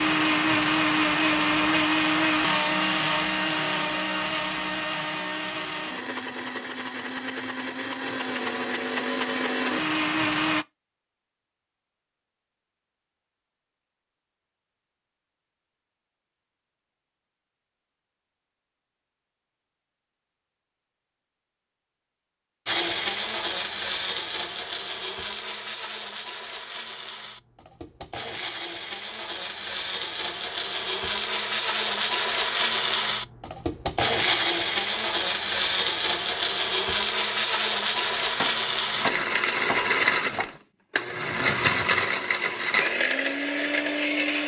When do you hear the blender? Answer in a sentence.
The blender can be heard from 0.0 to 10.7 s and from 22.6 to 44.4 s.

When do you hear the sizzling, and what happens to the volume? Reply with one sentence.
You can't hear the sizzling here.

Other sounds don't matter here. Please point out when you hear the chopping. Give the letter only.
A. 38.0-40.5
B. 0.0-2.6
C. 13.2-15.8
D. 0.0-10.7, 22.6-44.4
A.